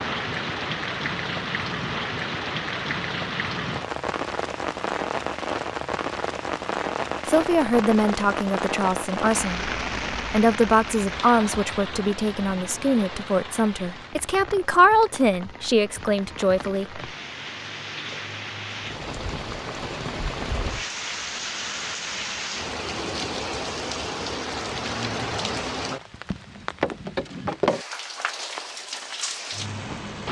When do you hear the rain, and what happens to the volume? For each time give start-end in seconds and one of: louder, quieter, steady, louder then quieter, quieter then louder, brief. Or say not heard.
0.0-30.2 quieter then louder.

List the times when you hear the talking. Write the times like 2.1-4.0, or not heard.
7.2-17.0.